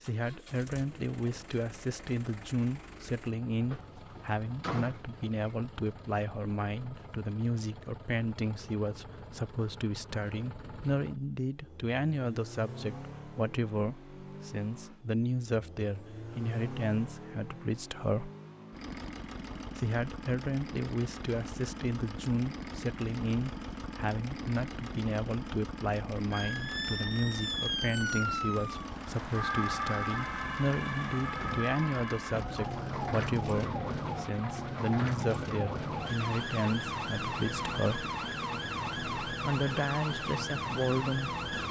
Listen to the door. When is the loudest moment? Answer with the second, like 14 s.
5 s.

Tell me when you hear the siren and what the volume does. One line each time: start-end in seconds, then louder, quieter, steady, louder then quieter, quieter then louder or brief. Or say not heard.
26.3-41.6 steady.